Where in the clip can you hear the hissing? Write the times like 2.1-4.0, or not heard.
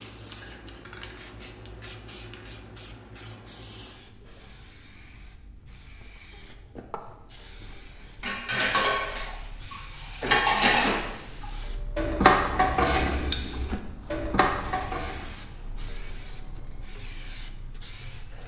0.0-18.4.